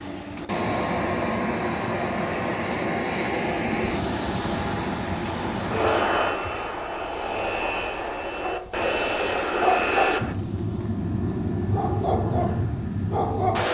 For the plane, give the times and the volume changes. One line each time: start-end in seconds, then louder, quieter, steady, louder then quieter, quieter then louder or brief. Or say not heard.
0.0-13.7 steady.